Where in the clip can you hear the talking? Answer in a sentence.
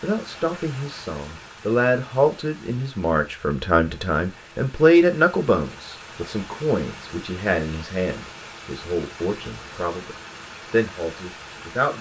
The talking can be heard from 0.0 to 11.9 s.